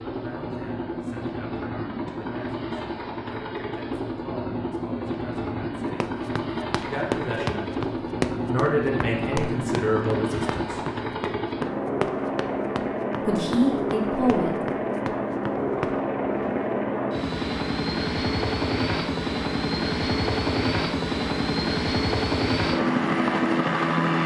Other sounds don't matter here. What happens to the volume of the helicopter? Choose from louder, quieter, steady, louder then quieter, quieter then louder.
louder.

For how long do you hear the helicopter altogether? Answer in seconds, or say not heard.
24 s.